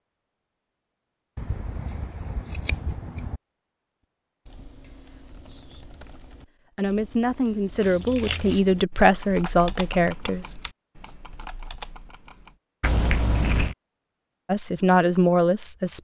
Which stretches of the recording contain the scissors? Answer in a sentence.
You can hear the scissors from 1.4 to 3.4 s, from 7.8 to 8.6 s and from 12.8 to 13.8 s.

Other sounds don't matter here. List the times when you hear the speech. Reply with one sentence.
The speech can be heard from 6.8 to 10.6 s and from 14.4 to 15.9 s.